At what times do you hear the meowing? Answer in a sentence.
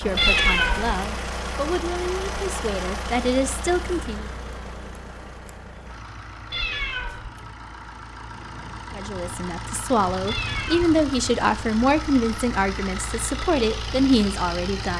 The meowing can be heard from 0.1 to 1.1 s, from 6.5 to 7.4 s and from 10.2 to 11.0 s.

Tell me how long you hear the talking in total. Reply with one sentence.
You can hear the talking for 10 seconds altogether.